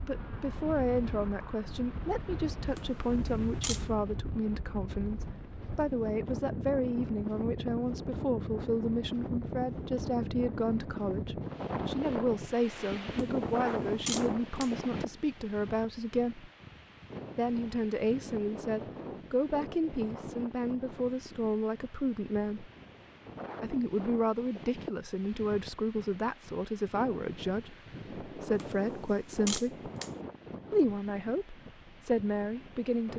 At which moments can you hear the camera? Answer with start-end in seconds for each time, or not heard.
2.8-3.9, 13.1-14.7, 28.6-30.1.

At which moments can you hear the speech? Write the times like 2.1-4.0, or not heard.
0.0-16.5, 17.4-22.7, 23.6-29.9, 30.7-33.1.